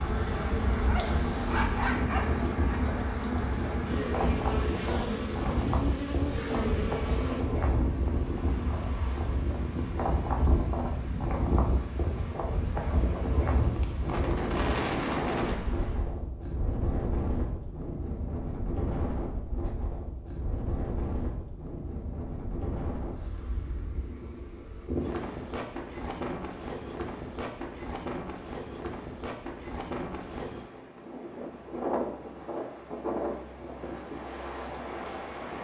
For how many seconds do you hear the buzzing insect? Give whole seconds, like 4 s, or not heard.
16 s.